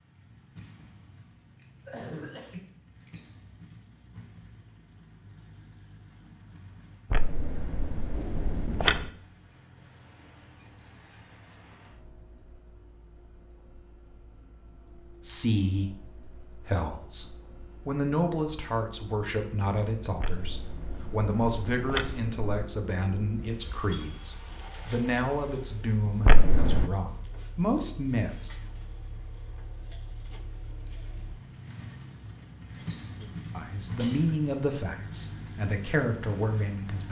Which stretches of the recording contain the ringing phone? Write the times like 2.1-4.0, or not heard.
7.1-9.1, 20.2-22.6, 26.2-26.9.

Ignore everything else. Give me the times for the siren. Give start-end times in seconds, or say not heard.
not heard.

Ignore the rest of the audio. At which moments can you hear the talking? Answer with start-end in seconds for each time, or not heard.
15.1-28.6, 33.2-37.0.